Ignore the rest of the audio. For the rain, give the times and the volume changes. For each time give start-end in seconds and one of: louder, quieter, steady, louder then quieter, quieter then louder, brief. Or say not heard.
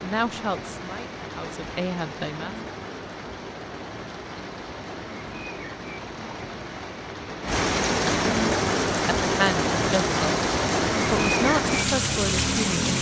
0.0-12.9 louder.